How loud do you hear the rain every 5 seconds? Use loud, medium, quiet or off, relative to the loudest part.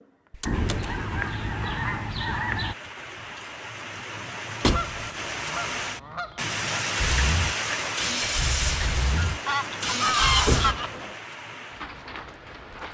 medium, loud, medium.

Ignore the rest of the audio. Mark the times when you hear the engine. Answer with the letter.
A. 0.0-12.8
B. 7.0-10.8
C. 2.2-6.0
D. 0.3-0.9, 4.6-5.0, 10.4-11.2
B.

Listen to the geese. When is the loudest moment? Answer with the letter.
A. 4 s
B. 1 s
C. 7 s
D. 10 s
D.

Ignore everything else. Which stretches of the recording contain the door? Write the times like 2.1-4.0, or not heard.
0.3-0.9, 4.6-5.0, 10.4-11.2.